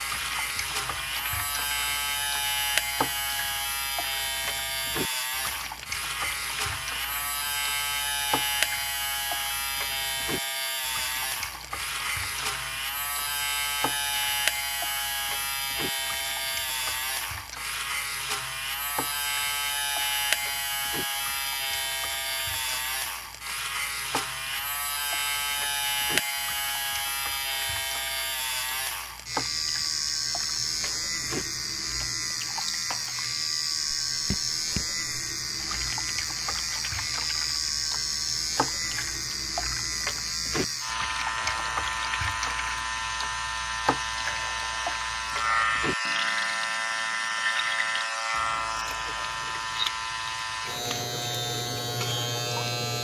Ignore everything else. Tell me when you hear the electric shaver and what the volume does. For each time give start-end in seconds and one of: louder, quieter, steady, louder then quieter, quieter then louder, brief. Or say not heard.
0.0-52.9 steady.